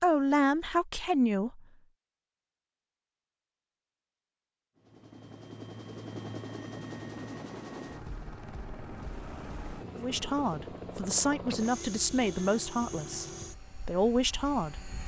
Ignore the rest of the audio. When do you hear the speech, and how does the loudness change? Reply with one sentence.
You can hear the speech briefly from 0.0 to 1.6 s; and from 9.9 to 15.0 s, getting quieter then louder.